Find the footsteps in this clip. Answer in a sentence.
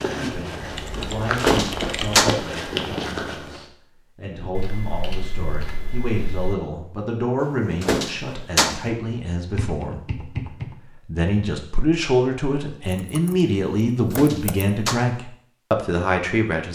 The footsteps can be heard from 0.0 to 3.6 s.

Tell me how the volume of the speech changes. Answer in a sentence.
The volume of the speech goes up.